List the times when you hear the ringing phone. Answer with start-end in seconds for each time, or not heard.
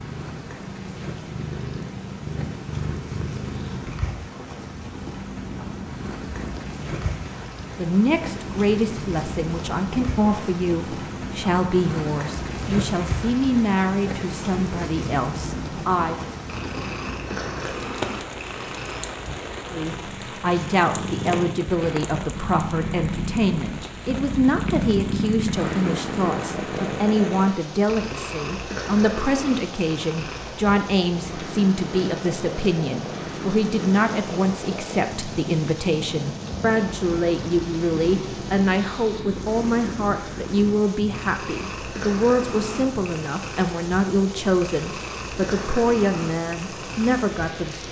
not heard.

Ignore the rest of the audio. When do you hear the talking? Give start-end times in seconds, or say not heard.
7.8-16.2, 19.7-47.8.